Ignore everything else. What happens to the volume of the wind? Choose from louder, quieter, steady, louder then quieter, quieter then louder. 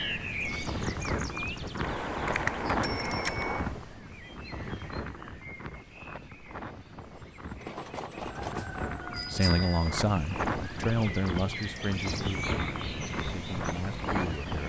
quieter then louder.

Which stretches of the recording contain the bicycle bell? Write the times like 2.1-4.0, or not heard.
1.8-3.8, 7.6-9.9.